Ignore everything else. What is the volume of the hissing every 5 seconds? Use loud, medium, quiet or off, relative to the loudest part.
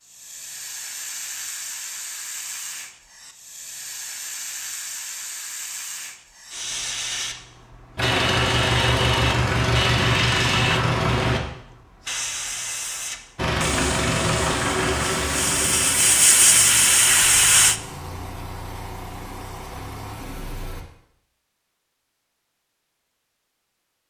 quiet, medium, medium, loud, off.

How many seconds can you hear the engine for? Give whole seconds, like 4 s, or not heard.
11 s.